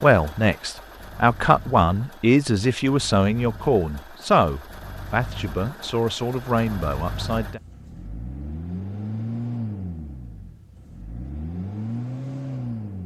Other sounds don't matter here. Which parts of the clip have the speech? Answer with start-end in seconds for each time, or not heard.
0.0-7.6.